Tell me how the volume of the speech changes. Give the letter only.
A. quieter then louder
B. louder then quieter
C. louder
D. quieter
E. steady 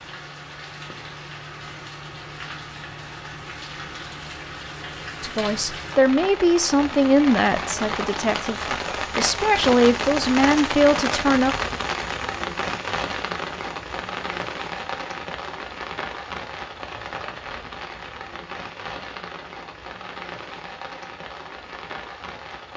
A.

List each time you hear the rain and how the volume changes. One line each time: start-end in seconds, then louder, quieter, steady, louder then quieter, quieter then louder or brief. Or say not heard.
0.0-22.7 louder then quieter.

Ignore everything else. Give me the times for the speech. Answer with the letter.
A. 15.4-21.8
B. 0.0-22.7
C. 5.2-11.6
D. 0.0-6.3
C.